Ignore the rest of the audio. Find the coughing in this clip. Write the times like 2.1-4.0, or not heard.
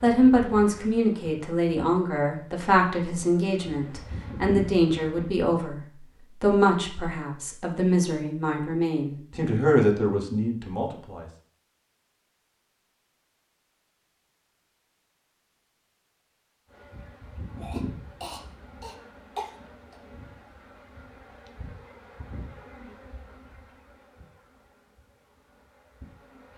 17.6-19.9.